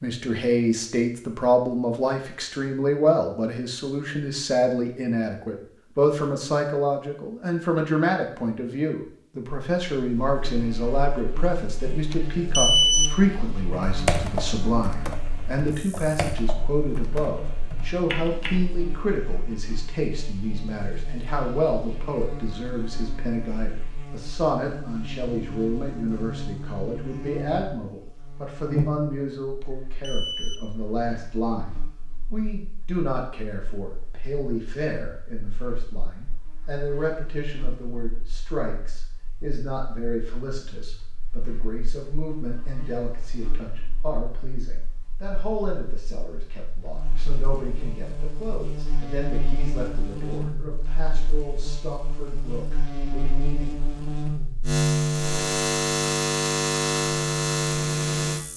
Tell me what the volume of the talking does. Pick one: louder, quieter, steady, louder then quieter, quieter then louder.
quieter.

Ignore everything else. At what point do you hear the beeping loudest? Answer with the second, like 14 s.
13 s.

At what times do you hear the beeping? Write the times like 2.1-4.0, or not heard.
12.1-13.2, 29.6-30.7.